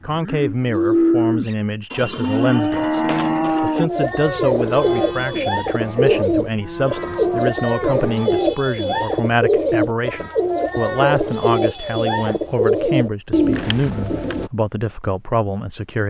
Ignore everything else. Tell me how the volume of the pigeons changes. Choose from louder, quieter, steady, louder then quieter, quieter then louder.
steady.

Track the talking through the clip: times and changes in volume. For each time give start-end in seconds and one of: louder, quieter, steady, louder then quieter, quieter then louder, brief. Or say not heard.
0.0-16.0 steady.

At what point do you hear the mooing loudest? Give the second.
1 s.